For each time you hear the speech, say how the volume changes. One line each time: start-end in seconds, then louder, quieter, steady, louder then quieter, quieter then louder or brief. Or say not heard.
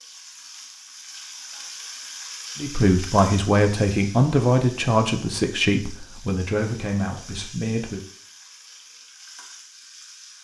2.5-8.0 quieter.